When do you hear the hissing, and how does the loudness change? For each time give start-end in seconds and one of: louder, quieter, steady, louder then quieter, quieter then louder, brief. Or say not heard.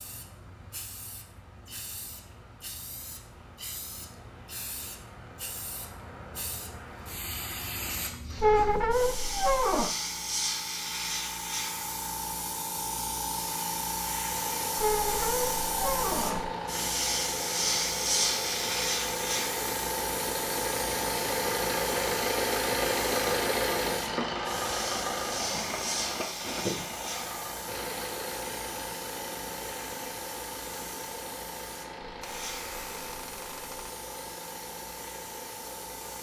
0.0-36.1 louder then quieter.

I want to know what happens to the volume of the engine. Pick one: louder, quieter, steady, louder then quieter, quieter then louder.
louder then quieter.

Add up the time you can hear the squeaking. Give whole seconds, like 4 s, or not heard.
5 s.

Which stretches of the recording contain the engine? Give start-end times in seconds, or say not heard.
14.3-36.1.